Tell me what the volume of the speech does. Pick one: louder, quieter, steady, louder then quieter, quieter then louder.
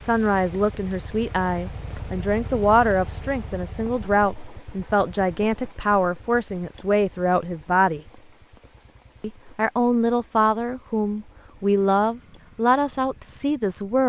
steady.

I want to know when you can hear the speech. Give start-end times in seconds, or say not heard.
0.0-8.0, 9.2-14.0.